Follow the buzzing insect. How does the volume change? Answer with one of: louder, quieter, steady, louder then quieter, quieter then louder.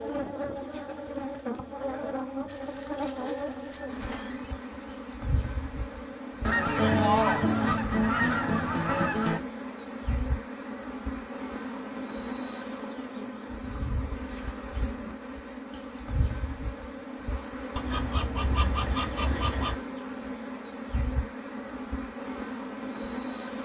steady.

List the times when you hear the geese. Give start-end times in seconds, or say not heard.
6.4-9.4, 17.8-19.8.